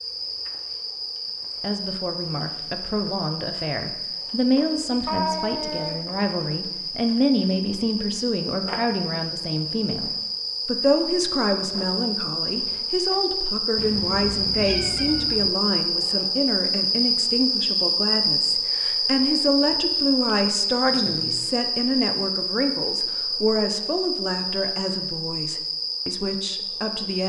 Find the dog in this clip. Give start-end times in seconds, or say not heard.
not heard.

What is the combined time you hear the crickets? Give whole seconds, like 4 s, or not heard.
27 s.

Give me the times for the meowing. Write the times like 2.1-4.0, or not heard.
5.0-6.0, 13.8-15.5.